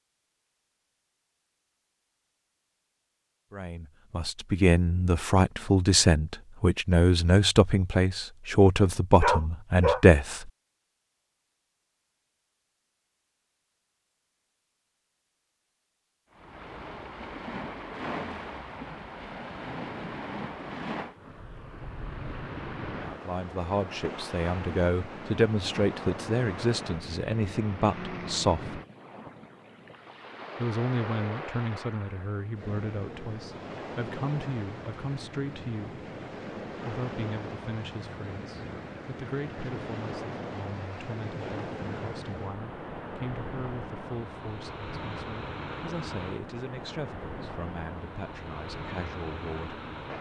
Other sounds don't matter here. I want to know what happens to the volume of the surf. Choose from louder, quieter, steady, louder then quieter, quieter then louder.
steady.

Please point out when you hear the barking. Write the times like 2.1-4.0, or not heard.
9.2-10.0.